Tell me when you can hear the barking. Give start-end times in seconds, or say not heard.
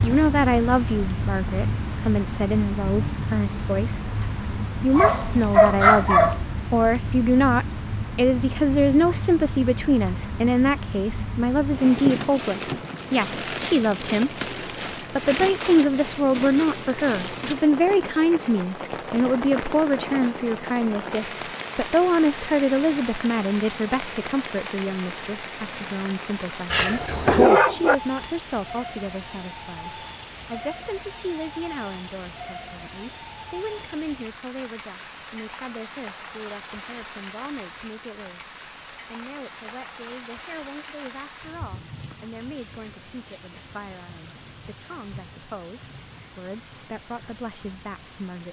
5.0-6.4, 26.7-27.9.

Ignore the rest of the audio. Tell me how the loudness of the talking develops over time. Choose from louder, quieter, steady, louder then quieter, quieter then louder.
quieter.